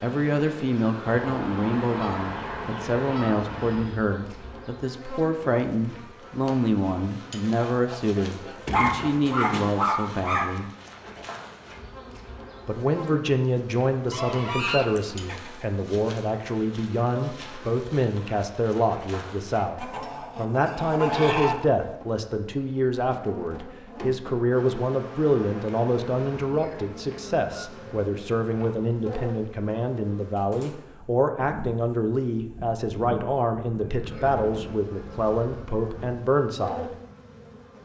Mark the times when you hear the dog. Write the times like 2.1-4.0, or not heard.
8.7-10.5.